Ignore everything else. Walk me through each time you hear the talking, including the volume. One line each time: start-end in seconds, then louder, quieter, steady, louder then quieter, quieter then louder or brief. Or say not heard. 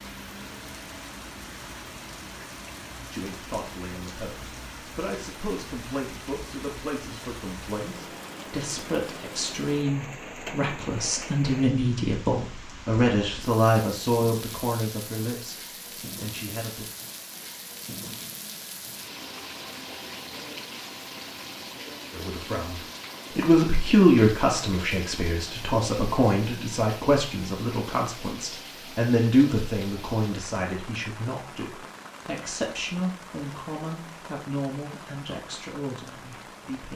3.1-15.6 louder
16.2-16.9 brief
22.1-36.9 quieter.